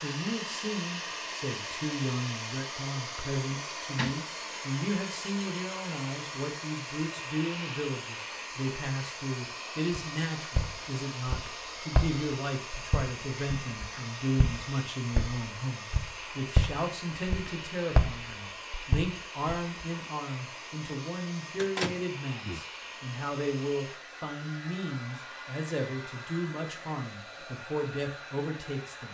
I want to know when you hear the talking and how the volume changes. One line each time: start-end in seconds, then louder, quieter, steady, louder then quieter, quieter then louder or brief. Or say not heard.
0.0-29.0 steady.